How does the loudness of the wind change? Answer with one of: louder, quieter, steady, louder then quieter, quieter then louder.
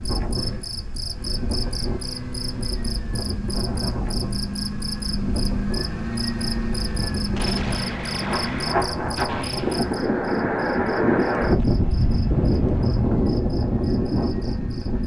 louder.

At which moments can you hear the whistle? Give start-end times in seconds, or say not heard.
not heard.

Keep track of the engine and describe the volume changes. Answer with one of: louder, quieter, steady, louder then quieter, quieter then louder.
louder then quieter.